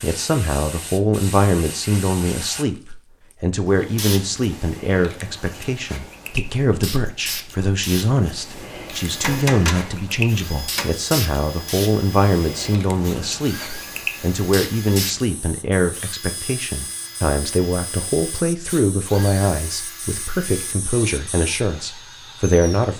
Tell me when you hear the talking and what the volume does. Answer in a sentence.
The talking can be heard from 0.0 to 22.9 s, at a steady volume.